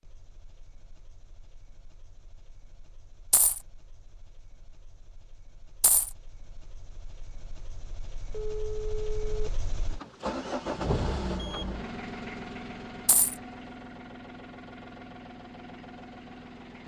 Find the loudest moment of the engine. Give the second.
11 s.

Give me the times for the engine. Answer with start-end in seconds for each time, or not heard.
0.0-16.8.